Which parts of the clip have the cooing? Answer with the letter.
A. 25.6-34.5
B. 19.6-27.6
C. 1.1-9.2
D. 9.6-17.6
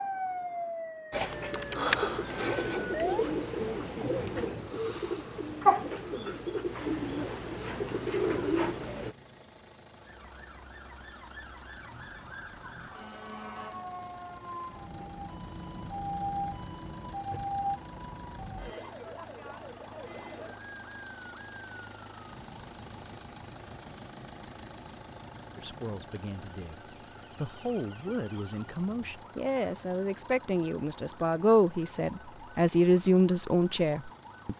C.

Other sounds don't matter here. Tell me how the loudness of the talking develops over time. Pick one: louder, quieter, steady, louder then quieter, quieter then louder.
louder.